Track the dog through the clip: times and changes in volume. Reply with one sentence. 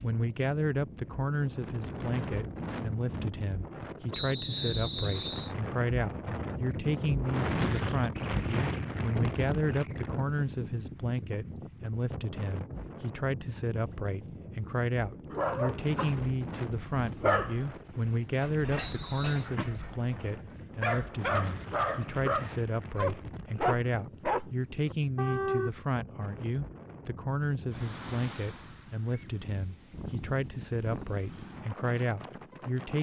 The dog can be heard from 15.3 to 25.7 s, getting quieter then louder.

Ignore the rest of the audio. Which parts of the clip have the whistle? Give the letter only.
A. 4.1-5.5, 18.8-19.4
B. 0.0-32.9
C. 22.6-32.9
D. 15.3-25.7
A.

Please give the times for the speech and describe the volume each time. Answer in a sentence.
You can hear the speech from 0.0 to 32.9 s, at a steady volume.